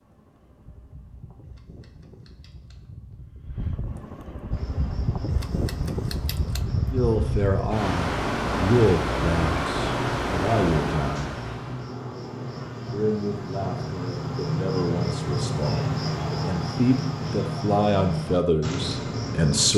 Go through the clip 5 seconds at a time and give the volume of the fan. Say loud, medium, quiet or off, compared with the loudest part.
quiet, loud, loud, off.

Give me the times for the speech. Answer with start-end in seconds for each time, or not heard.
6.9-11.4, 12.9-19.7.